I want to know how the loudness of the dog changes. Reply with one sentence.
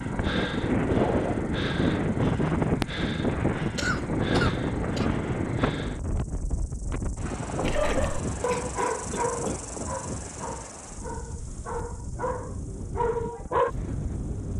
The loudness of the dog goes down, then up.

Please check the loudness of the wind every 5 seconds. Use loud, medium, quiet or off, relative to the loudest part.
loud, medium, quiet.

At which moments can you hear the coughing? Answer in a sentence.
You can hear the coughing from 3.8 to 5.1 s and from 7.6 to 9.6 s.